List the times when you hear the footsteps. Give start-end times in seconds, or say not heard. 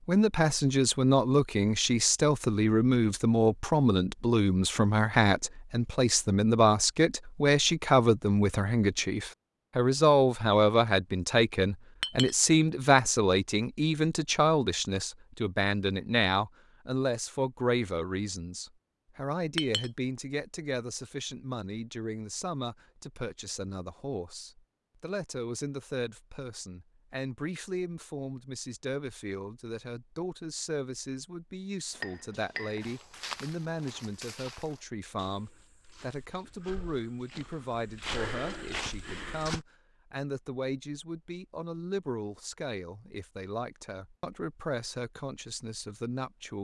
32.8-39.6.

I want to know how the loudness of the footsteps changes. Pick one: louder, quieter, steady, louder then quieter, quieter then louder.
quieter then louder.